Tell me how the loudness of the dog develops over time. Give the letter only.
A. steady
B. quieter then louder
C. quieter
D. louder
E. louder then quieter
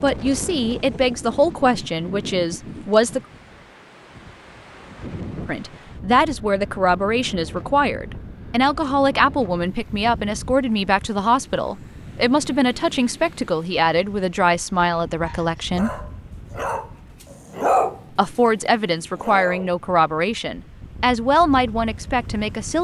E.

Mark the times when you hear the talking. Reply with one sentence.
The talking can be heard from 0.0 to 3.2 s, from 5.5 to 15.9 s and from 18.1 to 22.7 s.